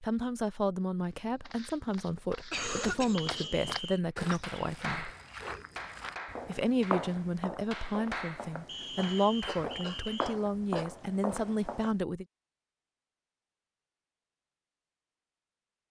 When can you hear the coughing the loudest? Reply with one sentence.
The loudest moment of the coughing is at 3 seconds.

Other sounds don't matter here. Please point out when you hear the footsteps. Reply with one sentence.
The footsteps can be heard from 1.0 to 11.9 s.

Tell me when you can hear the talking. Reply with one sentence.
You can hear the talking from 0.0 to 5.1 s and from 6.5 to 12.2 s.